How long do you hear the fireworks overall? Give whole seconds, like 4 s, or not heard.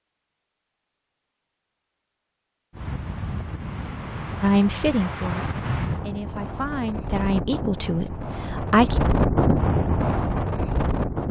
not heard.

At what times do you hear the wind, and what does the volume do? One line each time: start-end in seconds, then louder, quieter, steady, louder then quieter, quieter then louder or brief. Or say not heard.
2.7-11.2 louder.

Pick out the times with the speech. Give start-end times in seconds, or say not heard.
4.4-9.0.